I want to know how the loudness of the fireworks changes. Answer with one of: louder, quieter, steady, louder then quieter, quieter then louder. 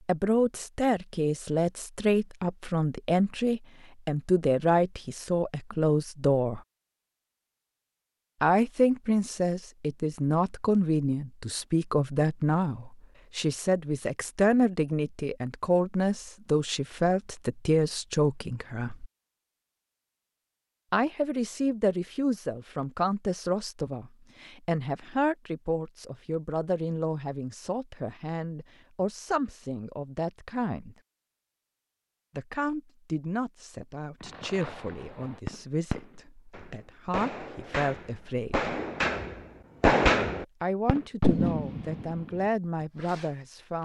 louder then quieter.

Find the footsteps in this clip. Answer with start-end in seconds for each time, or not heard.
not heard.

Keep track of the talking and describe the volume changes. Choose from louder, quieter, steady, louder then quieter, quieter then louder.
quieter.